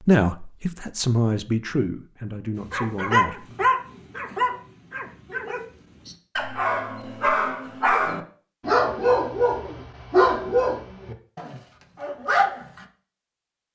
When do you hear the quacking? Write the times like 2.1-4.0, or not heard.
not heard.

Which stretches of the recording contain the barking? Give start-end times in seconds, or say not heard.
2.6-12.8.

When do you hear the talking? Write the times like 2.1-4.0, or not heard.
0.1-3.5.